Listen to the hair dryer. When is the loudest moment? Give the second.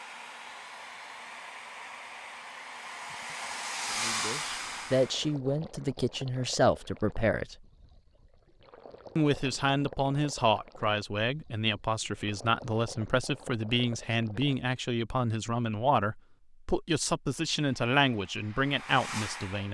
4 s.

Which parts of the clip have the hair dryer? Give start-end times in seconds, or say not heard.
0.0-5.4, 17.6-19.7.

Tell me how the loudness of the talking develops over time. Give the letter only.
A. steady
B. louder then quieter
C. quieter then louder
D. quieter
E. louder
A.